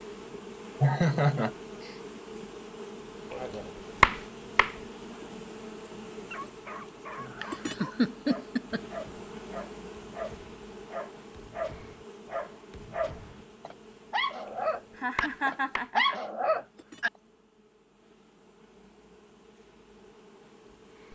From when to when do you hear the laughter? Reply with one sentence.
You can hear the laughter from 0.8 to 1.9 s, from 7.4 to 8.8 s and from 15.0 to 16.2 s.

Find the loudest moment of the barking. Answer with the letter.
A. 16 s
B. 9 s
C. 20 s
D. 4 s
A.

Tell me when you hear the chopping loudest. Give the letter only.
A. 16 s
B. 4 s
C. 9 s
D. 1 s
B.